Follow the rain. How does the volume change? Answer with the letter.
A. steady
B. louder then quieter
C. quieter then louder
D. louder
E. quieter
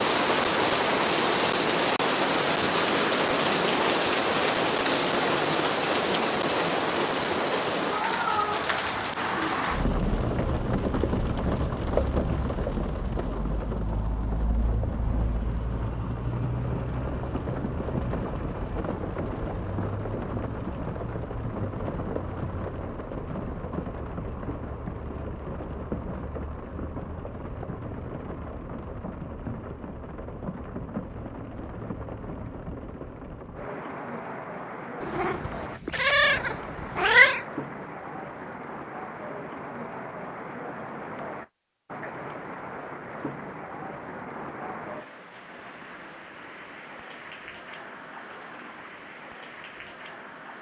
E.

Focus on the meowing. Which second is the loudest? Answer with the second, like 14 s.
37 s.